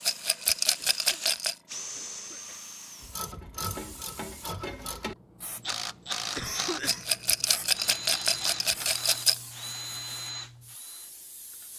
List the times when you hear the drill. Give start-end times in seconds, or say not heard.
0.0-3.1, 7.7-11.7.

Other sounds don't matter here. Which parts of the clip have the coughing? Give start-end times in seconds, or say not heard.
0.8-2.8, 6.3-7.1.